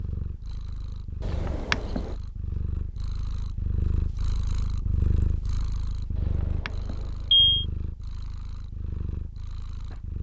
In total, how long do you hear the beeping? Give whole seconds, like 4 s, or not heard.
2 s.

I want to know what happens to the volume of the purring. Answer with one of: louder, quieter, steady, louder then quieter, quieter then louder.
louder then quieter.